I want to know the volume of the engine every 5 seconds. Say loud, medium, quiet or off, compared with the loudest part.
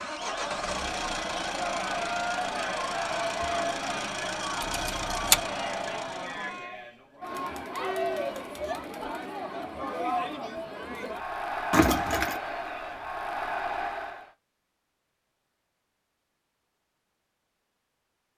loud, loud, off, off.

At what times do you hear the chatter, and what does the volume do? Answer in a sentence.
You can hear the chatter from 0.0 to 14.3 s, at a steady volume.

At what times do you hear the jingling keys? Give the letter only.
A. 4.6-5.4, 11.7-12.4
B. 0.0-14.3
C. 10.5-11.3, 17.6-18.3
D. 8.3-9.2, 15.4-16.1
A.